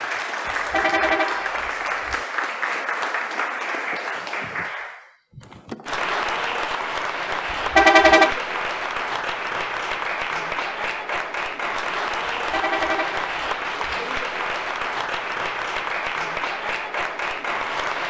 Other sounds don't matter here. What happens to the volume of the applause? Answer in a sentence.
The loudness of the applause stays about the same.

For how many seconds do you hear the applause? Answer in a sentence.
The applause can be heard for 18 seconds in total.